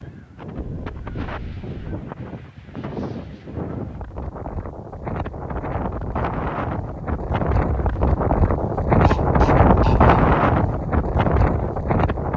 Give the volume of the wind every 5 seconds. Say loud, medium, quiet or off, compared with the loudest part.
quiet, loud, loud.